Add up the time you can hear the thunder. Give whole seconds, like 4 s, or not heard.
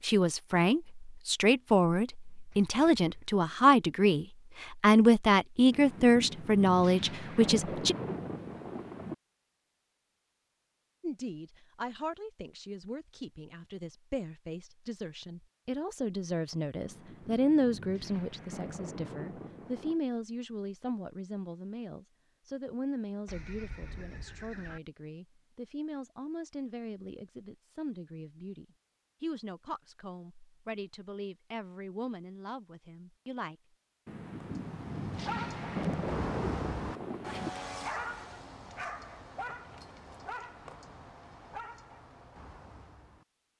10 s.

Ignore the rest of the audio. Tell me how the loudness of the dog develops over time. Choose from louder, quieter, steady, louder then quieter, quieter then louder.
quieter.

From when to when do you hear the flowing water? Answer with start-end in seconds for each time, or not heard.
not heard.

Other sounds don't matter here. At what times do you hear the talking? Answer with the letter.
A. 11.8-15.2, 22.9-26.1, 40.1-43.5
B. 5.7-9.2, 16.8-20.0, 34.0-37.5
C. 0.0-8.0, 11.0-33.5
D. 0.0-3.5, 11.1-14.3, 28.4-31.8
C.